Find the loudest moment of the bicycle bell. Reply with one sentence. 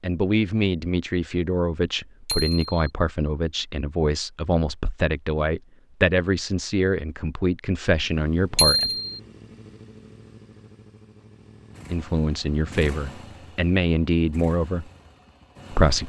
The loudest moment of the bicycle bell is at 9 seconds.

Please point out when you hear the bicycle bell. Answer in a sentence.
You can hear the bicycle bell from 2.2 to 2.8 s and from 8.6 to 9.2 s.